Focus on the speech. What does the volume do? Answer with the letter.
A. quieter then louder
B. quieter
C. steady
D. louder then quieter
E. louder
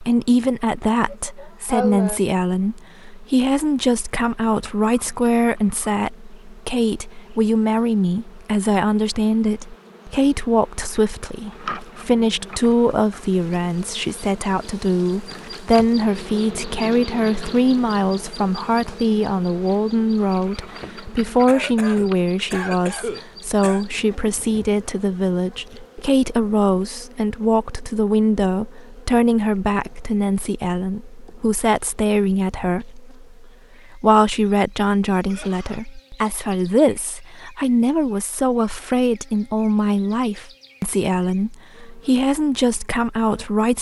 C.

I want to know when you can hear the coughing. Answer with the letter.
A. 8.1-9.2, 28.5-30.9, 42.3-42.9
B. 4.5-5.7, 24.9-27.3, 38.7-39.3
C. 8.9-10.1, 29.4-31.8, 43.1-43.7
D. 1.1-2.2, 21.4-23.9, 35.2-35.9
D.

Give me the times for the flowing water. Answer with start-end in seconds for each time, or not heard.
not heard.